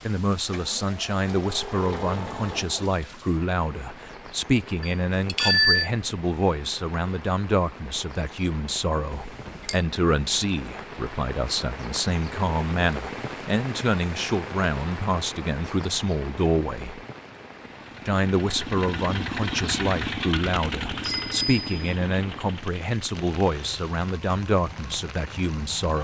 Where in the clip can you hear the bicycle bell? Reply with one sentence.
You can hear the bicycle bell from 4.8 to 5.9 s, from 9.2 to 9.8 s and from 21.0 to 21.6 s.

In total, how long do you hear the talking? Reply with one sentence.
You can hear the talking for 25 seconds altogether.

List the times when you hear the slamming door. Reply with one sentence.
The slamming door can be heard from 9.3 to 9.8 s.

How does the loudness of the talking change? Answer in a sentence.
The loudness of the talking stays about the same.